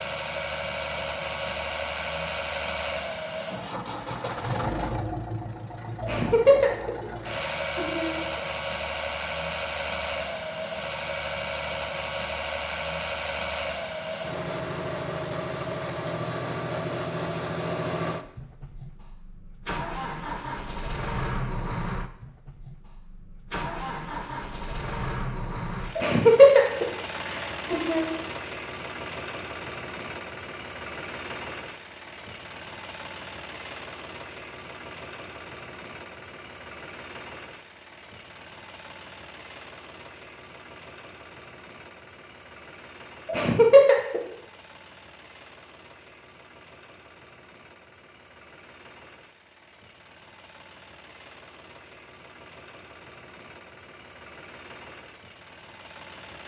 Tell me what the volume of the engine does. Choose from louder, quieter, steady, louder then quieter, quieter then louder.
quieter.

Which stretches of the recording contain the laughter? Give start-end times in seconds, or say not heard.
6.0-8.4, 25.9-28.1, 43.2-44.2.